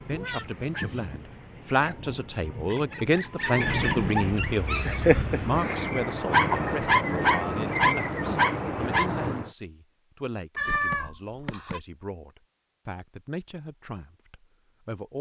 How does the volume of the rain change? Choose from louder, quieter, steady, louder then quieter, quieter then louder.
louder.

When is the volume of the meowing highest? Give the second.
11 s.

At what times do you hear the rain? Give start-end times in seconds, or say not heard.
0.0-9.5.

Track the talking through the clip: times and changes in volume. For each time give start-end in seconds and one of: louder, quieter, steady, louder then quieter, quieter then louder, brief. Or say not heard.
0.1-15.1 quieter.